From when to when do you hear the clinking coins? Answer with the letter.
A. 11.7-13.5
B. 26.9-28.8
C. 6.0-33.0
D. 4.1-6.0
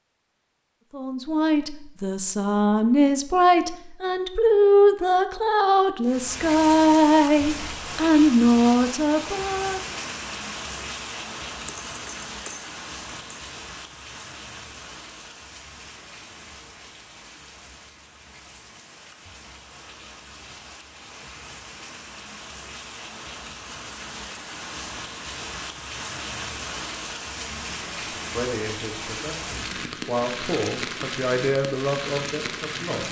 A.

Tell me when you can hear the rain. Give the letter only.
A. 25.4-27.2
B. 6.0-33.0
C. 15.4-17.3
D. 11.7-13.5
B.